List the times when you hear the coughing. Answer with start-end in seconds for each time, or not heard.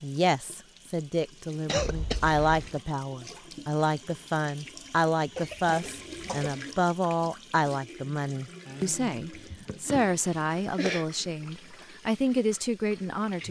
1.6-2.8, 5.3-6.5, 9.3-11.1.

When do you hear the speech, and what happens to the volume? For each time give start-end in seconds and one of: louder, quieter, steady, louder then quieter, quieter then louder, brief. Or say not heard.
0.0-13.4 steady.